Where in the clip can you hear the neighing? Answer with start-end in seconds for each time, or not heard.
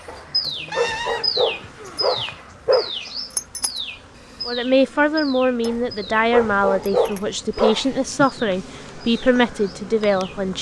0.7-2.0.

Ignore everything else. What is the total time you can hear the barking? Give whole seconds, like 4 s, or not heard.
5 s.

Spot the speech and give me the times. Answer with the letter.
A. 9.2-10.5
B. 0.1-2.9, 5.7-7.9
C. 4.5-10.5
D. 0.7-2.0
C.